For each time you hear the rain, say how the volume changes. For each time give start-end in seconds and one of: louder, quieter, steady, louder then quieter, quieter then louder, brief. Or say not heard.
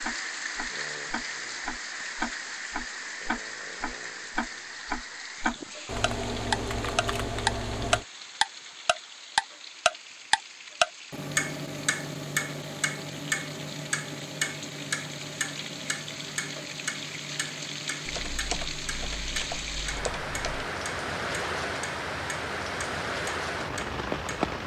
0.0-24.6 quieter then louder.